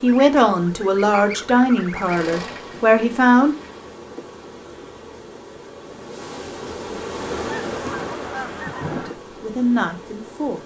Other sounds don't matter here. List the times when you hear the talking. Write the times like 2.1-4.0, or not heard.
0.0-3.5, 9.4-10.6.